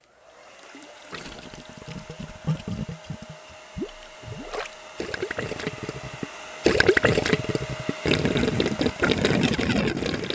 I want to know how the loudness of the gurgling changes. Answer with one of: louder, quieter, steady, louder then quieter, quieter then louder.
louder.